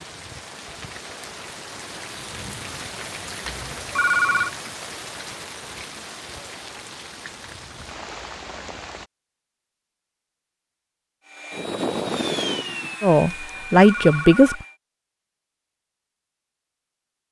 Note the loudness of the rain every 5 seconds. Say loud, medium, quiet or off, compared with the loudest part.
loud, loud, off, off.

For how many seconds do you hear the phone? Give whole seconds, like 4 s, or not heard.
2 s.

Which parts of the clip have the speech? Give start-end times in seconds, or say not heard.
13.0-14.6.